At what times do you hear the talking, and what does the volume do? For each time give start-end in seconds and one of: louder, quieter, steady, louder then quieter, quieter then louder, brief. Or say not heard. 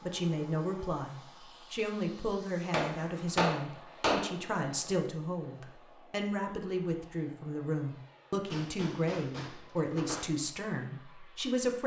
0.0-11.8 steady.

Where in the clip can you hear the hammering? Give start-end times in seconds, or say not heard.
2.7-4.3, 8.5-10.2.